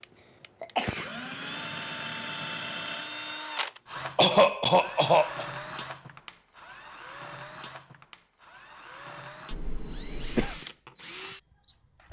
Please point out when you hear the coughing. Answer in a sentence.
The coughing can be heard from 0.6 to 1.9 s, from 4.2 to 5.5 s and from 9.5 to 10.6 s.